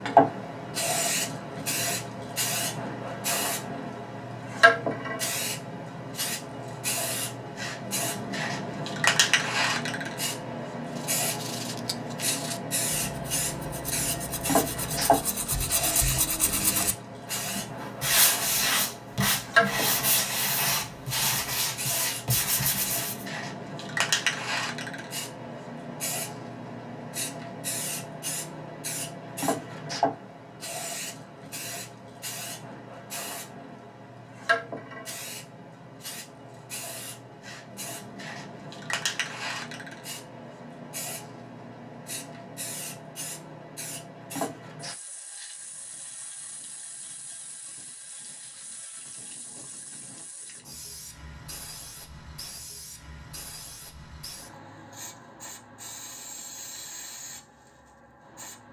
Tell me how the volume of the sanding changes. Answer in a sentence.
The loudness of the sanding goes up.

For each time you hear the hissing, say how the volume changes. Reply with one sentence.
You can hear the hissing from 0.0 to 58.6 s, getting quieter.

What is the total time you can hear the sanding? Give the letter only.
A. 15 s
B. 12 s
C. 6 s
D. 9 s
B.